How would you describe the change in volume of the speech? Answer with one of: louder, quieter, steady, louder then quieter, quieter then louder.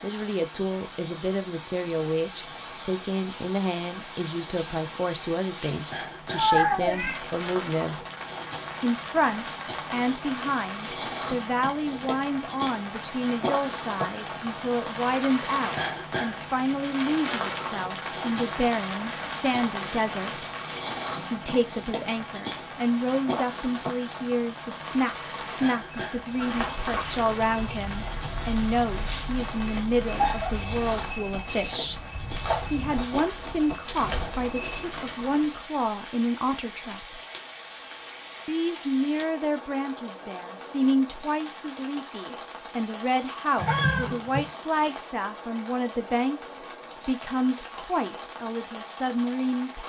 steady.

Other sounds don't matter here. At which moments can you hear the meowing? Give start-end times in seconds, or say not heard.
6.3-7.2, 28.1-30.6, 43.5-44.5.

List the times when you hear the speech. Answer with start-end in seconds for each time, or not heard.
0.0-8.0, 8.8-20.4, 21.2-31.9, 32.7-37.2, 38.5-49.8.